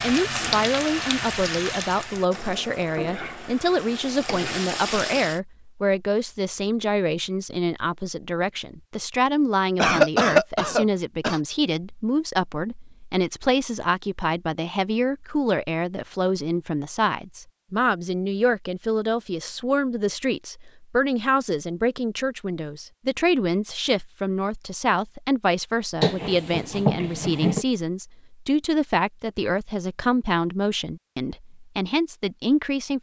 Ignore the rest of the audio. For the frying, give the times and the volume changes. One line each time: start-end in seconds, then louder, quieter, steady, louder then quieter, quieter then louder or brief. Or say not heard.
0.0-5.4 quieter then louder.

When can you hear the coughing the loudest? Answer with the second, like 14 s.
10 s.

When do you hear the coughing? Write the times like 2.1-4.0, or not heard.
9.8-11.4, 26.0-27.6.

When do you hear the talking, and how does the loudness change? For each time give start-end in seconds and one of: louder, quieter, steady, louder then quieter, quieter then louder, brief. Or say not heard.
0.0-32.9 steady.